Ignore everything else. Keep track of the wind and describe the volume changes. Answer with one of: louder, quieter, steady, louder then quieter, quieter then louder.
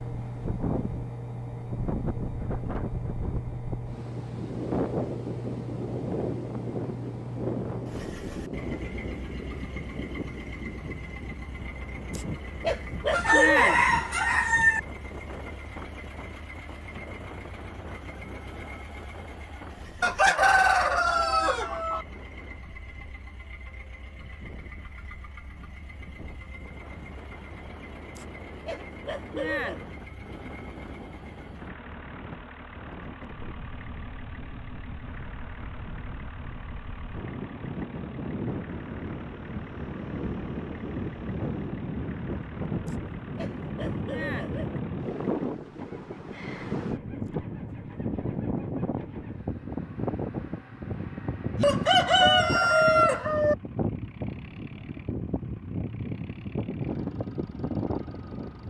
quieter then louder.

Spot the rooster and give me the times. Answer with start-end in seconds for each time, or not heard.
13.1-14.8, 20.0-22.1, 51.5-53.5.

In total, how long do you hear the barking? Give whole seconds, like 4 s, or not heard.
5 s.